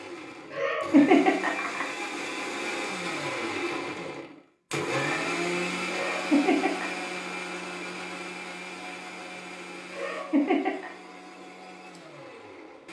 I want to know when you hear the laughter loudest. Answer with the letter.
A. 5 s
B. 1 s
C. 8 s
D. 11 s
B.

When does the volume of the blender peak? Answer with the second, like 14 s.
5 s.